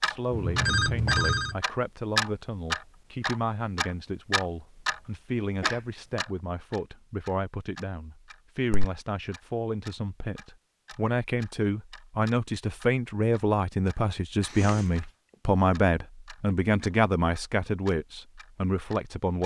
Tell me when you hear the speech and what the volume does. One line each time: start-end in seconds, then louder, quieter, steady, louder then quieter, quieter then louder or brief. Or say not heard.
0.0-19.4 louder.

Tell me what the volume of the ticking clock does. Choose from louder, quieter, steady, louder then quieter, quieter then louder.
quieter.